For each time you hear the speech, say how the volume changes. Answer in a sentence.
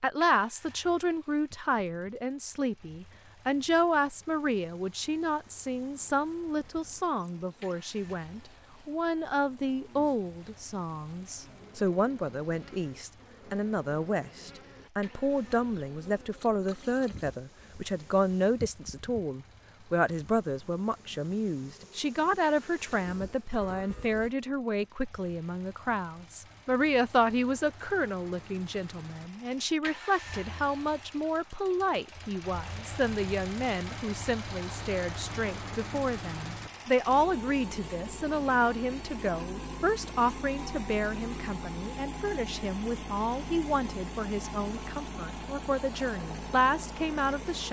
The speech can be heard from 0.0 to 47.6 s, at a steady volume.